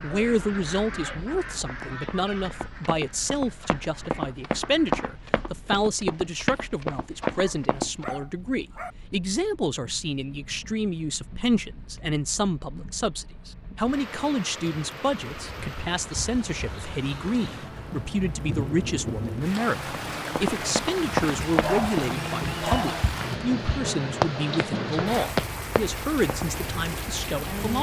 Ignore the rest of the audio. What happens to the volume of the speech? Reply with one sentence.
The volume of the speech stays about the same.